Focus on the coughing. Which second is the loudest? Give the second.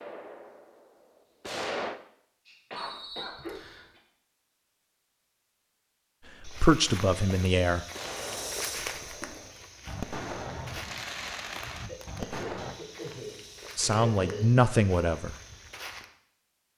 14 s.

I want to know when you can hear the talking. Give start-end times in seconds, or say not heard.
6.4-7.8, 13.8-15.3.